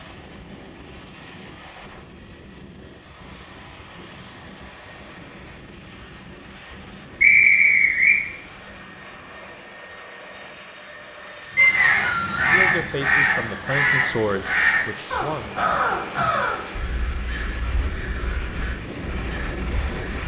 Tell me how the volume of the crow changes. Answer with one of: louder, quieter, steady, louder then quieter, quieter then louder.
quieter.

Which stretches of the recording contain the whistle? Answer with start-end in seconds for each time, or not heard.
7.2-8.2, 11.6-12.6.